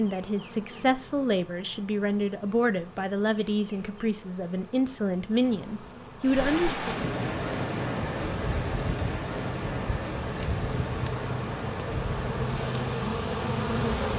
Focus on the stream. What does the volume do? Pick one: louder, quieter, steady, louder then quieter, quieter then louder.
quieter.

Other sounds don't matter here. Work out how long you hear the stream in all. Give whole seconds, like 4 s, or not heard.
8 s.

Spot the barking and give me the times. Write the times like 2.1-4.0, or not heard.
not heard.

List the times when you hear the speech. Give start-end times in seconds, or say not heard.
0.0-7.0.